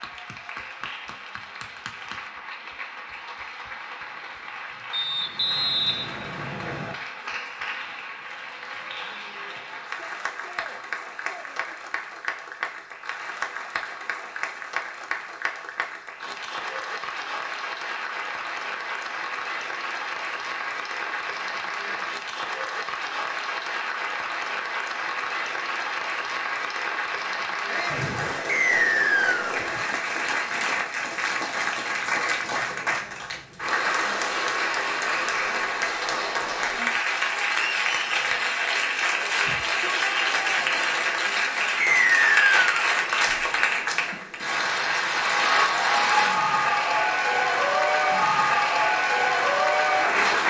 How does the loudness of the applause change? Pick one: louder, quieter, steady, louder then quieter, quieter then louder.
louder.